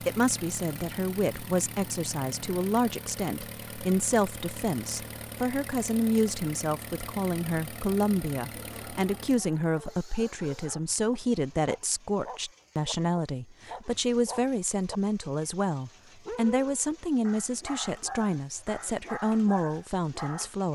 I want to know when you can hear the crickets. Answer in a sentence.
You can't hear the crickets here.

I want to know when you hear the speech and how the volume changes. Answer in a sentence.
The speech can be heard from 0.0 to 20.7 s, at a steady volume.